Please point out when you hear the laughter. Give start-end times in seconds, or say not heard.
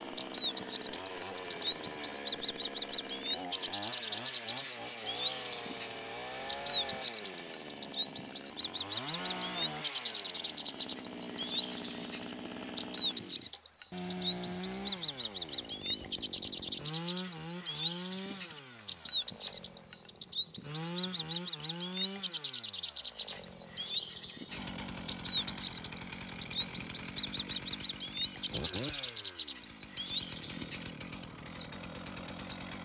not heard.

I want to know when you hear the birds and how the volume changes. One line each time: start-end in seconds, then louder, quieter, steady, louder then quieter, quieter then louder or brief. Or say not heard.
0.0-32.6 steady.